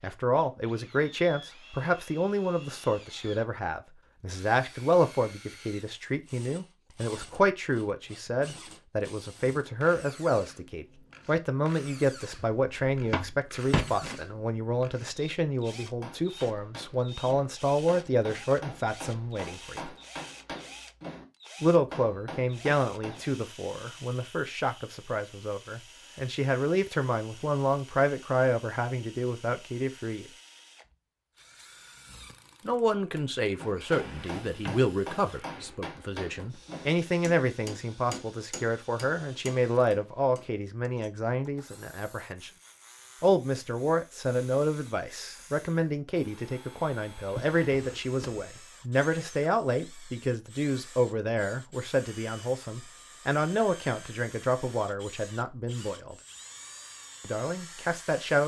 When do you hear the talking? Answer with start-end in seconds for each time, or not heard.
0.0-19.9, 21.6-30.2, 32.6-42.5, 43.2-56.1, 57.2-58.4.